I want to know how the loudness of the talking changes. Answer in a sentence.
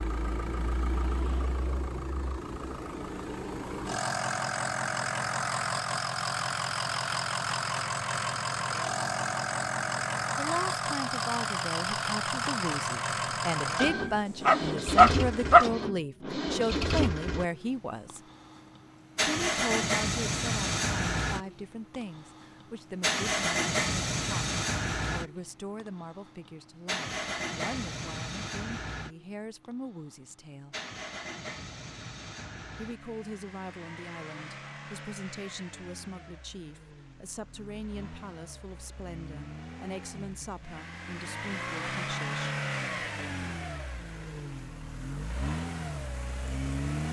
The volume of the talking goes down.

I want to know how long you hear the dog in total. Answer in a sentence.
The dog can be heard for 2 seconds in total.